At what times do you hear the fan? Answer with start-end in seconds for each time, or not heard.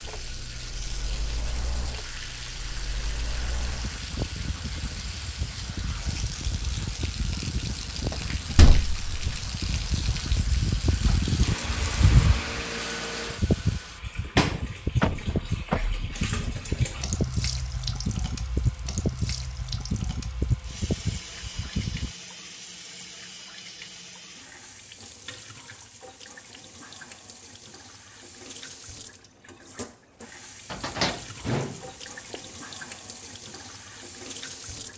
0.0-22.1.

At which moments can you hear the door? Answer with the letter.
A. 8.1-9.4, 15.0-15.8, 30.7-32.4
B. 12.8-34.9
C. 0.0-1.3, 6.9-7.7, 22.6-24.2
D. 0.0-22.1
A.